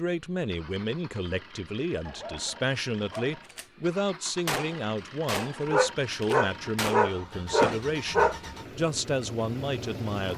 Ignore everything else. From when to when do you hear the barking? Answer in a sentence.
You can hear the barking from 2.0 to 3.5 s and from 5.7 to 8.3 s.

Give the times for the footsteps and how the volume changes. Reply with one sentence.
The footsteps can't be heard in this clip.